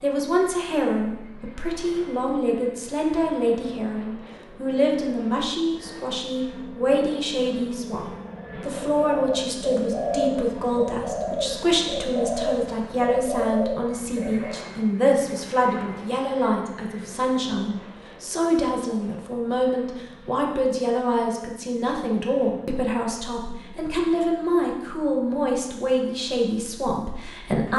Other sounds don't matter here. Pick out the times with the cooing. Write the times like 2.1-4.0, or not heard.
8.7-14.7.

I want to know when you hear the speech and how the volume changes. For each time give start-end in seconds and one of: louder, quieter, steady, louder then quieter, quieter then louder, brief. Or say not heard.
0.0-27.7 steady.